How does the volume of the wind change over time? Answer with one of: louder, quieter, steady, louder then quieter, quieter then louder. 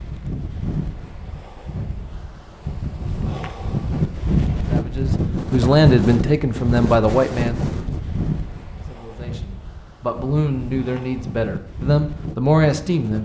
louder then quieter.